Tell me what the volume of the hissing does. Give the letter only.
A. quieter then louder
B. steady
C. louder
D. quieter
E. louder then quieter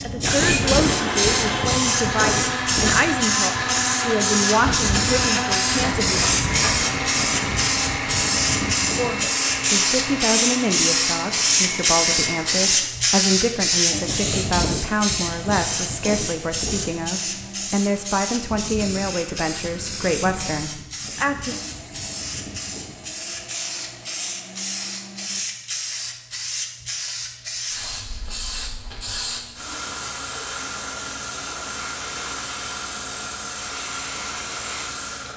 D.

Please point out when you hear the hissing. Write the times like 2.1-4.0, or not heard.
0.0-35.3.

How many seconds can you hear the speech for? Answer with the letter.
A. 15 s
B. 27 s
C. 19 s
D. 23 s
C.